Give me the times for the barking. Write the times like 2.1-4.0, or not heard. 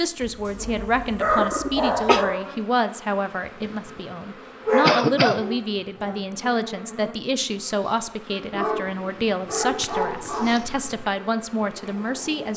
0.2-2.4, 4.7-6.2, 8.5-10.6.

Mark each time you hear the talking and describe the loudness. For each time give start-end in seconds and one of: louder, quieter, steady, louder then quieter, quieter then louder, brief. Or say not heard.
0.0-12.5 steady.